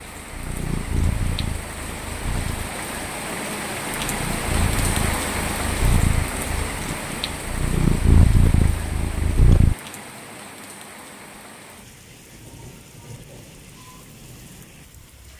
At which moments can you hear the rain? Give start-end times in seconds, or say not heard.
0.0-15.3.